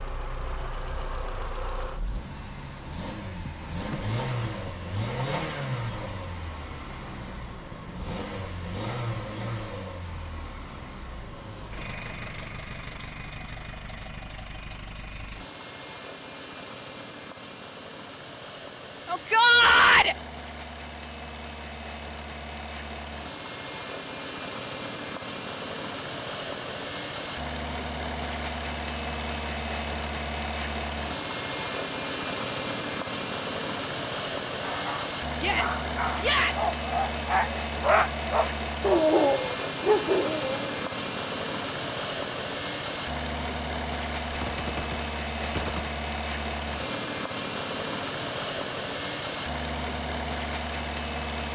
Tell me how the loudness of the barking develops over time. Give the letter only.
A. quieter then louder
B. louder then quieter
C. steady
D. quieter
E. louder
E.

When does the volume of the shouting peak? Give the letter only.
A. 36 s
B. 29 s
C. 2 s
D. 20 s
D.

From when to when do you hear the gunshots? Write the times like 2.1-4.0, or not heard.
44.2-45.9.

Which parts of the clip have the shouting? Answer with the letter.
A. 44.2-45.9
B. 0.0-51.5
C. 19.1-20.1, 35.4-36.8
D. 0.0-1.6
C.